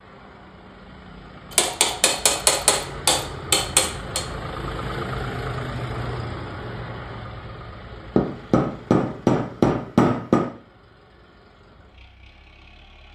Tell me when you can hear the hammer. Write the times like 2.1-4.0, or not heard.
1.5-4.2, 8.2-10.5.